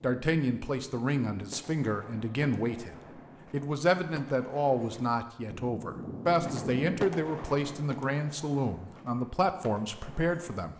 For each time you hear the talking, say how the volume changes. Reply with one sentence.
The talking can be heard from 0.0 to 10.7 s, at a steady volume.